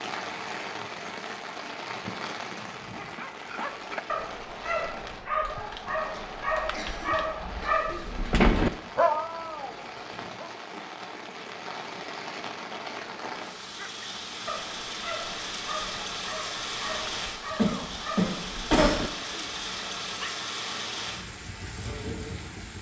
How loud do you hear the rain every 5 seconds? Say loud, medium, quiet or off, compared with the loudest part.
loud, medium, loud, loud, loud.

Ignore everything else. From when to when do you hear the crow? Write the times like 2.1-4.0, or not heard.
not heard.